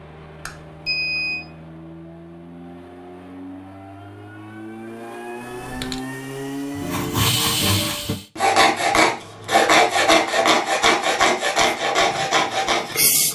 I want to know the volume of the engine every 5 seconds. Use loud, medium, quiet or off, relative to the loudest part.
medium, loud, off.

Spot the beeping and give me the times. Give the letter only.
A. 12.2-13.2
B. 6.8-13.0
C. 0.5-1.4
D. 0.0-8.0
C.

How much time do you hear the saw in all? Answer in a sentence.
The saw can be heard for 6 seconds in total.